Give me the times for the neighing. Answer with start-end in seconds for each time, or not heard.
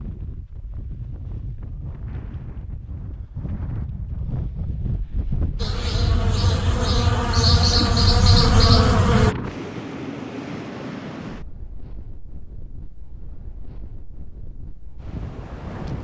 not heard.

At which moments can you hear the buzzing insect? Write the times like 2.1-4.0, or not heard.
5.5-9.3.